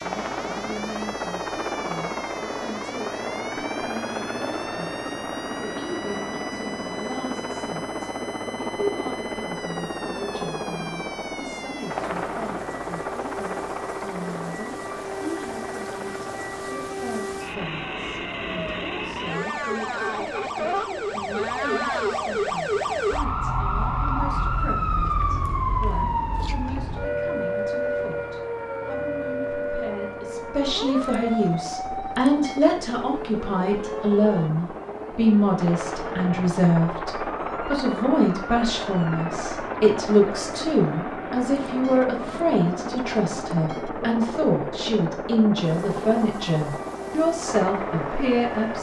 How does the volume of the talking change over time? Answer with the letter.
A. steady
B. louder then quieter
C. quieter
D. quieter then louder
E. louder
E.